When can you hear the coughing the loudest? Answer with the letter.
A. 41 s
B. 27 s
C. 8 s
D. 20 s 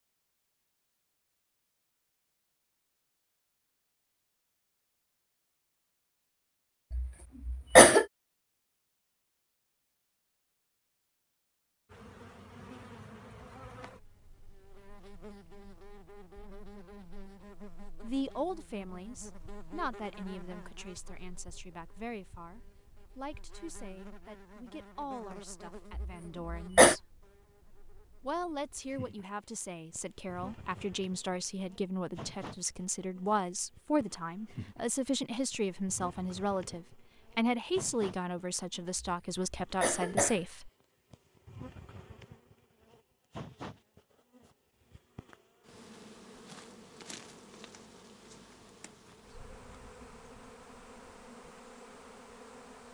C.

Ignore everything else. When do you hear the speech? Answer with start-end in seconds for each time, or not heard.
18.0-27.1, 28.2-40.7.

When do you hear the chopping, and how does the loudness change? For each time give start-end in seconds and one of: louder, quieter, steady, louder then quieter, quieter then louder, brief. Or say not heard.
not heard.